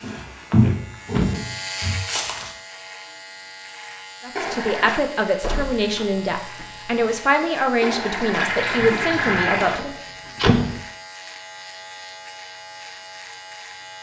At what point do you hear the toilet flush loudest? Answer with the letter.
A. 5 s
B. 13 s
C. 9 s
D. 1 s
C.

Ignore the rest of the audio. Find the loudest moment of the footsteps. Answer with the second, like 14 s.
1 s.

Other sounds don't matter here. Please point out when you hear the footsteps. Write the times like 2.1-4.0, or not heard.
0.0-2.5.